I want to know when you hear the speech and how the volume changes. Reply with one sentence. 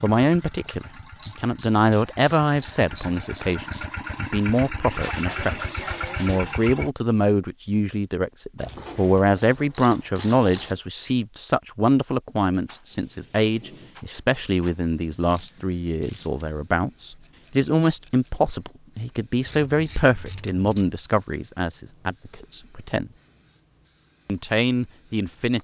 The speech can be heard from 0.0 to 23.1 s, at a steady volume; and briefly from 24.2 to 25.5 s.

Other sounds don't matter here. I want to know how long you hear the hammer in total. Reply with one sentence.
You can't hear the hammer here.